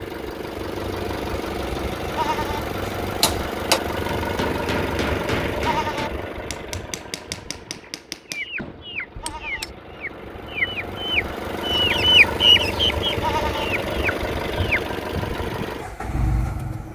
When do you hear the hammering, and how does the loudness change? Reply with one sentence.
You can hear the hammering from 2.9 to 9.7 s, getting quieter.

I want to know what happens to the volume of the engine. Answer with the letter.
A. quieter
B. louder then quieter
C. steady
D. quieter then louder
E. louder
D.